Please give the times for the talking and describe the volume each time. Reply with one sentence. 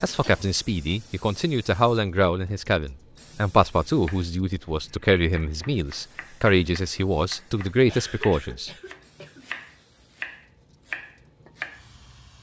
You can hear the talking from 0.0 to 9.2 s, at a steady volume.